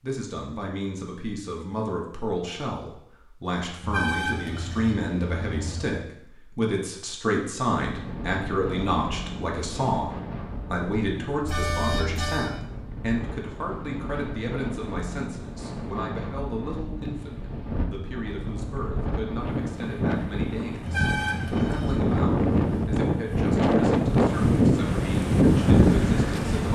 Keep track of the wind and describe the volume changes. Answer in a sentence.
The loudness of the wind goes up.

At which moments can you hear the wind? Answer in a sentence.
The wind can be heard from 7.8 to 26.7 s.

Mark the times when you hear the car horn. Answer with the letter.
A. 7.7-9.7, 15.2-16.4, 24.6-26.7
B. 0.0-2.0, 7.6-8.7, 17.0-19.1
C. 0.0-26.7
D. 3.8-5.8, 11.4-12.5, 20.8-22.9
D.